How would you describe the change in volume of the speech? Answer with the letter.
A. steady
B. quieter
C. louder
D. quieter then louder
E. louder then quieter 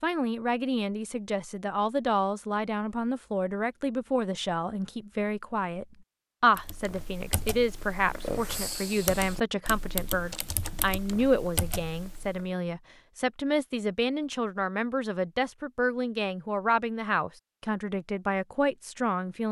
A.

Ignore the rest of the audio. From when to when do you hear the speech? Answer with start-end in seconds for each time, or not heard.
0.0-19.4.